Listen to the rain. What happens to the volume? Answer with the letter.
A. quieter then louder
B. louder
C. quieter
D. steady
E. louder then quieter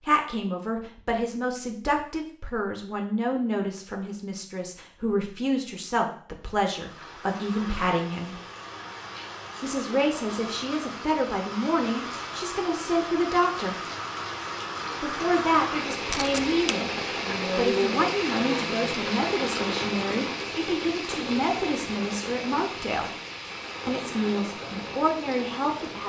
E.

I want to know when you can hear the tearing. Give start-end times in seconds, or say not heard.
16.1-16.8.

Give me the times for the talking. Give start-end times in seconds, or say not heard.
0.0-8.4, 9.6-13.8, 15.0-23.1, 23.9-26.0.